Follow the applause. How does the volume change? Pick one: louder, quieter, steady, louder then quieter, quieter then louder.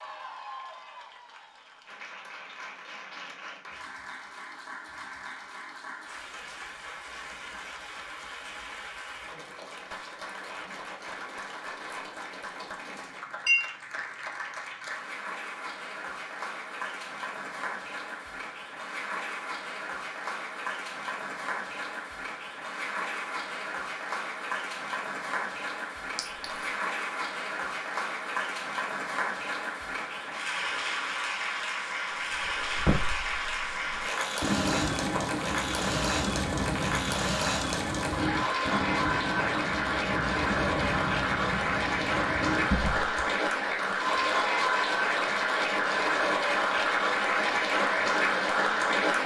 louder.